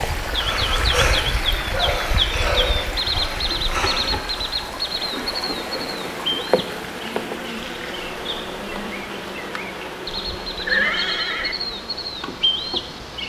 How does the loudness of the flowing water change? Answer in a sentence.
The volume of the flowing water goes down.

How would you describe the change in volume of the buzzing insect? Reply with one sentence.
The volume of the buzzing insect goes down.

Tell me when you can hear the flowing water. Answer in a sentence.
You can hear the flowing water from 0.0 to 13.2 s.